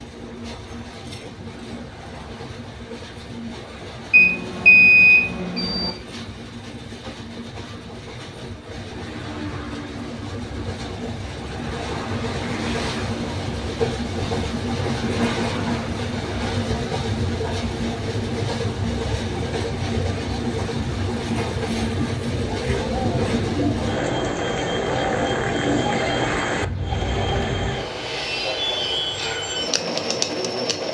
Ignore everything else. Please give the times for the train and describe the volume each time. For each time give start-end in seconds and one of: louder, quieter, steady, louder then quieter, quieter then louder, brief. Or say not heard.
0.0-30.8 louder.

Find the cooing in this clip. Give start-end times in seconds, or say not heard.
22.3-27.9.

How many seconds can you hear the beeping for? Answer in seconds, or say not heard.
2 s.